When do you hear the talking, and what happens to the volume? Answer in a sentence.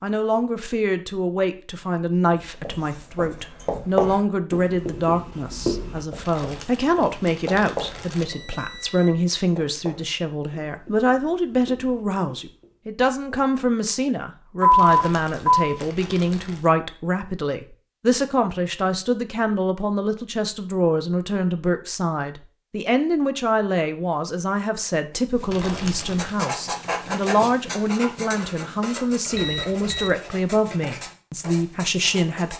You can hear the talking from 0.0 to 32.5 s, at a steady volume.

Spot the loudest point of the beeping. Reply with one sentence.
The volume of the beeping peaks at 15 seconds.